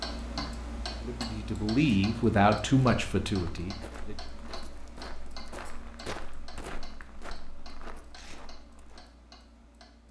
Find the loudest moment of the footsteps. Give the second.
6 s.